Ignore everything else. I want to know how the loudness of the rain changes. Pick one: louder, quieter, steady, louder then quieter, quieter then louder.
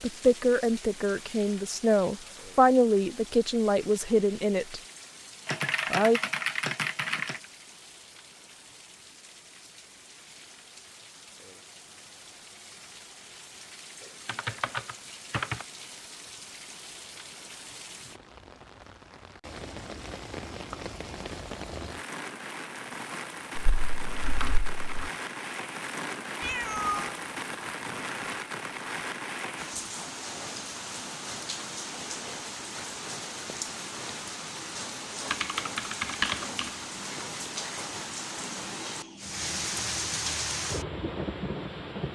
louder.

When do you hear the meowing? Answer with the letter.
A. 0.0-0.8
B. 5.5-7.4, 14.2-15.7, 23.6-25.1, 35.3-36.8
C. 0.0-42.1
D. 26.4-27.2
D.